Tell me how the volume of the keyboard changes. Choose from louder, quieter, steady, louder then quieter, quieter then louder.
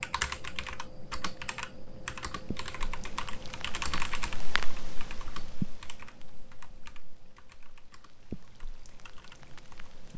quieter.